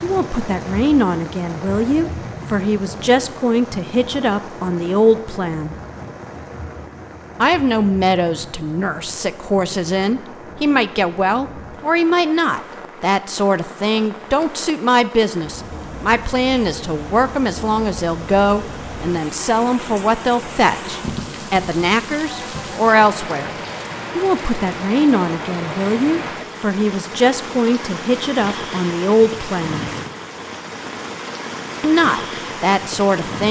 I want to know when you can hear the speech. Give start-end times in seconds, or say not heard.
0.0-5.8, 7.4-23.6, 24.1-29.9, 31.8-33.4.